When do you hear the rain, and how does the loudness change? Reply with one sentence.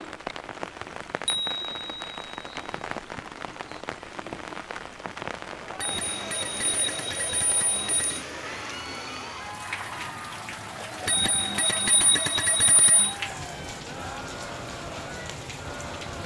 The rain can be heard from 0.0 to 16.2 s, at a steady volume.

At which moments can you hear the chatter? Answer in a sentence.
You can hear the chatter from 5.5 to 16.2 s.